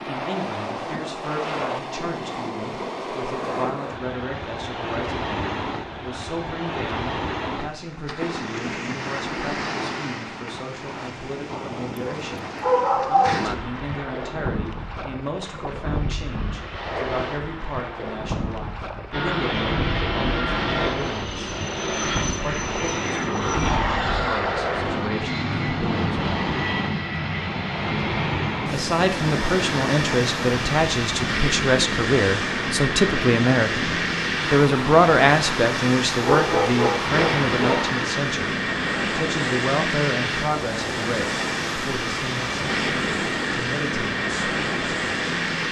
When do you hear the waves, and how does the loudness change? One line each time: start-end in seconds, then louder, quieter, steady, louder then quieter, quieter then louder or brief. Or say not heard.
0.0-45.6 steady.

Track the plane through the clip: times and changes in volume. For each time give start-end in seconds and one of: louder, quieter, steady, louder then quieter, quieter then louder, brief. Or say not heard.
19.1-45.6 steady.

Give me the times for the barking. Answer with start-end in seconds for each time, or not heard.
11.9-13.4, 36.2-37.9.